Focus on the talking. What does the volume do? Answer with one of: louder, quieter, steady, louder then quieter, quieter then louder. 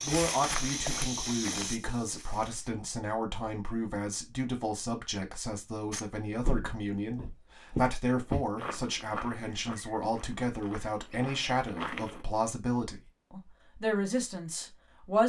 steady.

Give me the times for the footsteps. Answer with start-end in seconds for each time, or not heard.
0.0-2.7, 5.9-12.2.